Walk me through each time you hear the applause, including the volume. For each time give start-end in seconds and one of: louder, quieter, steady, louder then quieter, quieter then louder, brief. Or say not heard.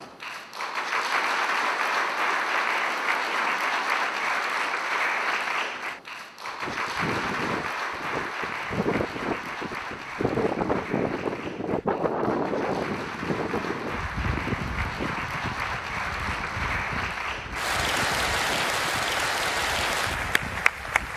0.0-21.1 quieter then louder.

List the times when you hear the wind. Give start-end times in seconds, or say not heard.
6.5-21.1.